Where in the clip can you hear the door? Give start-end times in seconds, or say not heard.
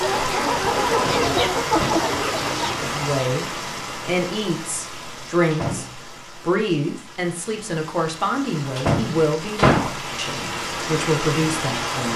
0.9-2.0, 5.0-6.0, 8.8-9.9.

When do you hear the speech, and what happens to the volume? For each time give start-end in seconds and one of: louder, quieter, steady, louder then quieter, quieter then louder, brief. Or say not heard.
2.8-12.1 steady.